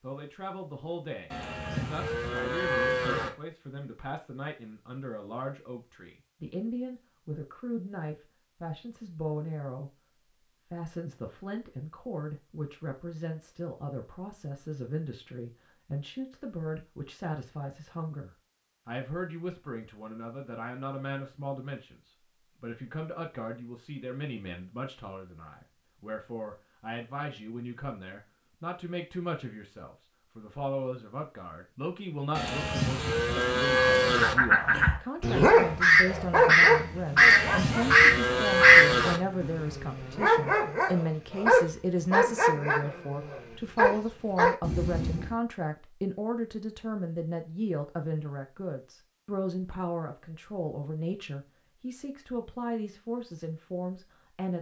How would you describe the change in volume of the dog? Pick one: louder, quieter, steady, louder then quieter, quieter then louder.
quieter then louder.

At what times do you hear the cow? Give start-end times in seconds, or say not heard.
1.3-3.3, 32.4-34.4, 37.1-39.2.